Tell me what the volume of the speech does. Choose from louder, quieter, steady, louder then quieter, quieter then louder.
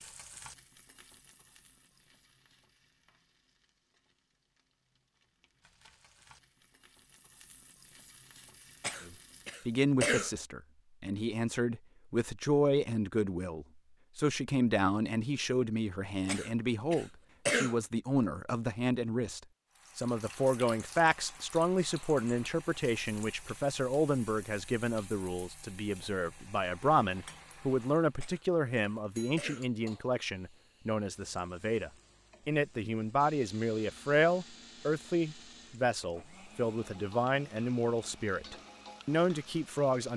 steady.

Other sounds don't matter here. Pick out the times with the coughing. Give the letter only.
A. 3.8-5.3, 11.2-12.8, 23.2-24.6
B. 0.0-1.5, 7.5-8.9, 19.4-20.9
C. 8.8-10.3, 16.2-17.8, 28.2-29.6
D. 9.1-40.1
C.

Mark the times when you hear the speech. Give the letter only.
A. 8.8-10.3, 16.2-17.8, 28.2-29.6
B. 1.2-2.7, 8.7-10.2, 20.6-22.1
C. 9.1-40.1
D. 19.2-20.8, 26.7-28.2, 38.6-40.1
C.